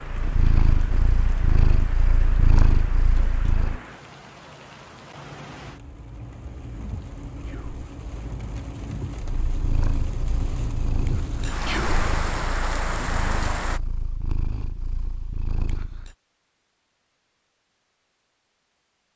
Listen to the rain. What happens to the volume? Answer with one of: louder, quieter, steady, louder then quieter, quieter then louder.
louder.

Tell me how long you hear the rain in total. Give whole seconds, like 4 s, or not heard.
14 s.